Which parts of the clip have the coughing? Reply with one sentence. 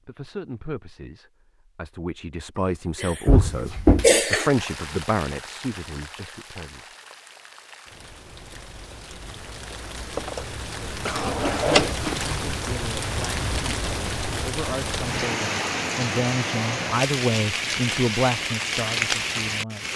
You can hear the coughing from 3.0 to 4.5 s and from 11.1 to 12.3 s.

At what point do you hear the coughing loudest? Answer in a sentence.
The volume of the coughing peaks at 4 seconds.